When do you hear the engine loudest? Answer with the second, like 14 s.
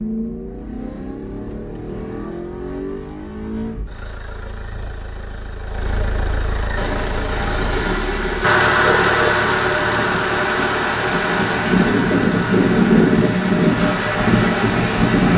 9 s.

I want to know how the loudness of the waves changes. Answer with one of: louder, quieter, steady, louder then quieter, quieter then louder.
louder.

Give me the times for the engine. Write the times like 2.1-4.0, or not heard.
0.0-15.3.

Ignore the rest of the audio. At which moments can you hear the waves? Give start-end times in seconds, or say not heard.
6.8-15.3.